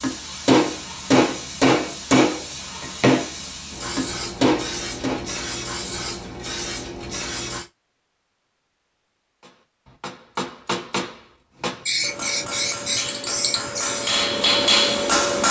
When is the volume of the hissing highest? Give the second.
12 s.